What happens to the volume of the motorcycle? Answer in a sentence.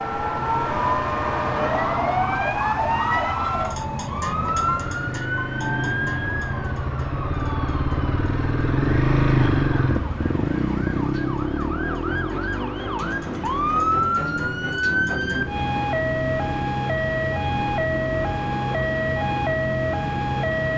The loudness of the motorcycle goes up, then down.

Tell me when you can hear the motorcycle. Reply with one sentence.
You can hear the motorcycle from 0.1 to 20.7 s.